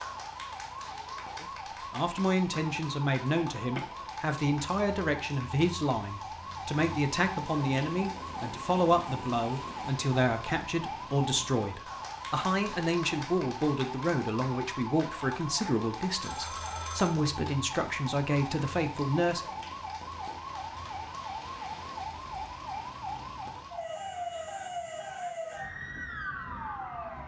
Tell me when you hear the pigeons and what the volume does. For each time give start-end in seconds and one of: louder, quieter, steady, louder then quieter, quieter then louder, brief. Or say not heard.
not heard.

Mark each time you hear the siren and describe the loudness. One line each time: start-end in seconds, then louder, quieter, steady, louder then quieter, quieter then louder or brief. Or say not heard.
0.0-27.2 steady.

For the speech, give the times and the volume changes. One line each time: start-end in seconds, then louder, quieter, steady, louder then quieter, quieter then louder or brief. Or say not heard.
1.4-19.4 steady.